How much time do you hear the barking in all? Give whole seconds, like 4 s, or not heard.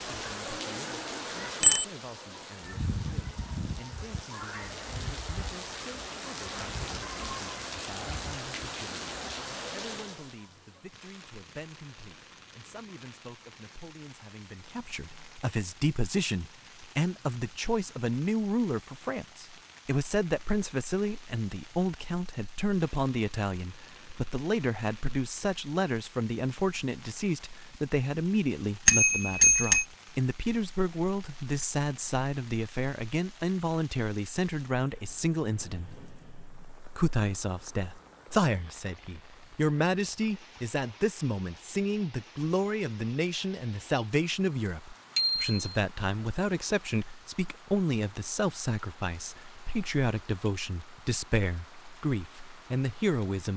not heard.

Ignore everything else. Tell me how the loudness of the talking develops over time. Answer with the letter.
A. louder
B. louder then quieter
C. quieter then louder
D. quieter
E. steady
A.